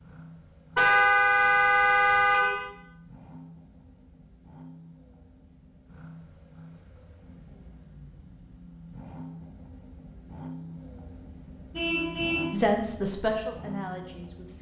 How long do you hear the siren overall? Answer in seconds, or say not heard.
not heard.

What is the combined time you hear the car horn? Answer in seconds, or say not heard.
3 s.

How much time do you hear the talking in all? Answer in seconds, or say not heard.
2 s.